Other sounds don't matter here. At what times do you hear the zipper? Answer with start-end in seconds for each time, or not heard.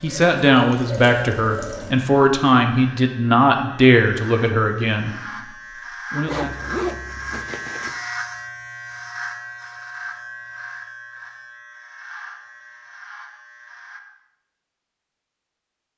6.2-8.0.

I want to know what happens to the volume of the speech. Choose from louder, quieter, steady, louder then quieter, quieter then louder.
quieter.